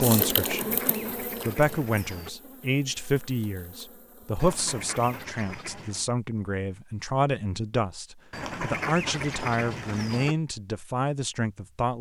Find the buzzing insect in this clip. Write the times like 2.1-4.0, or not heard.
0.0-5.2.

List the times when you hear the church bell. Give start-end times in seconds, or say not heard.
not heard.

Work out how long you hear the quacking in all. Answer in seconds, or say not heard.
6 s.